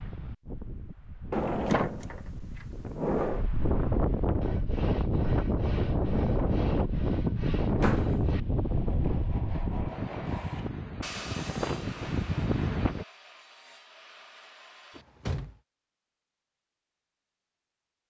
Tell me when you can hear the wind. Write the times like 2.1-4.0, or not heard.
0.0-13.1.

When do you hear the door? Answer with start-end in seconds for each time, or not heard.
1.3-2.2, 2.9-3.5, 7.8-8.2, 14.9-15.6.